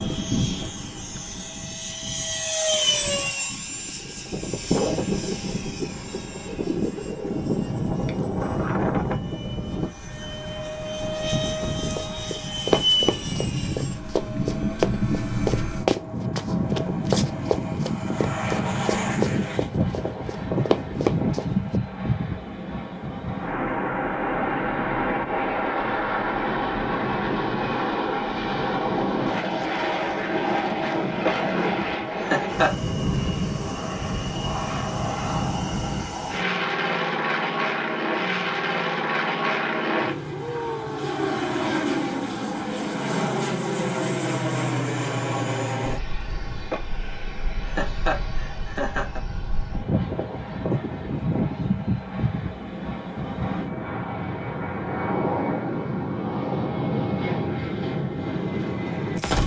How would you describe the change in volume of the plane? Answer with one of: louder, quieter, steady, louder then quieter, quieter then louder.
steady.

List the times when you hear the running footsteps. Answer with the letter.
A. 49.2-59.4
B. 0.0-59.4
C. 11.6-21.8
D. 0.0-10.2
C.